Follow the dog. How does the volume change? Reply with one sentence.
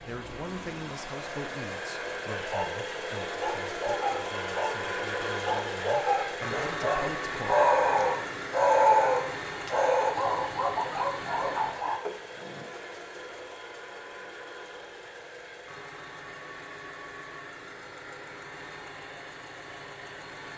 The volume of the dog goes up, then down.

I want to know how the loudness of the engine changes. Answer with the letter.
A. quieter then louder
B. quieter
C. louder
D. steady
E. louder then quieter
B.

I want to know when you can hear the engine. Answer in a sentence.
You can hear the engine from 0.0 to 20.5 s.